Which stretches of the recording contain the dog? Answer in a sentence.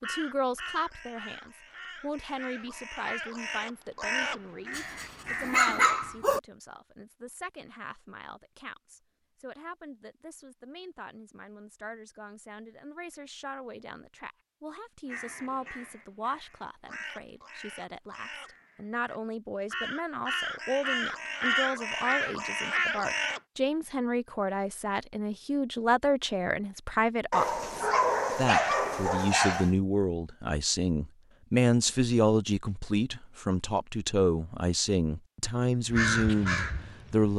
The dog can be heard from 4.8 to 6.4 s and from 27.3 to 29.7 s.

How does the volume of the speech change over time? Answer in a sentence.
The loudness of the speech goes down, then up.